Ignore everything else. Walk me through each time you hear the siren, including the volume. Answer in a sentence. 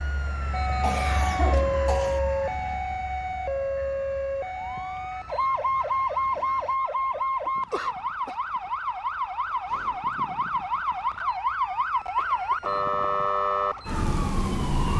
The siren can be heard from 0.0 to 14.9 s, at a steady volume.